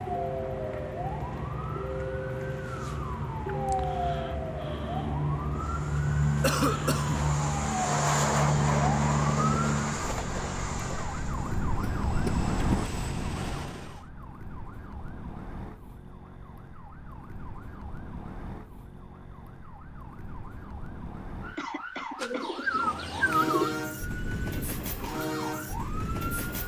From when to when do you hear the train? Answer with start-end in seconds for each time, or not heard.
5.6-14.1, 22.6-26.6.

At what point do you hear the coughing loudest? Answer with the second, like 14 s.
7 s.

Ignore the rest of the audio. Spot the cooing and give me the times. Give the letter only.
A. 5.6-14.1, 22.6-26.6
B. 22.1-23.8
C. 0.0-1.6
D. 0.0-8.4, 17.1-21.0
B.